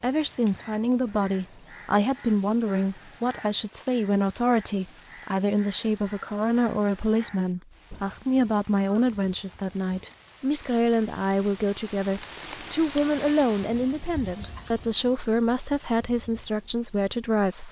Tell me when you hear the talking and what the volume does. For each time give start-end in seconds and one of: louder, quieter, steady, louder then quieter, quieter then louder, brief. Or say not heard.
0.0-17.6 steady.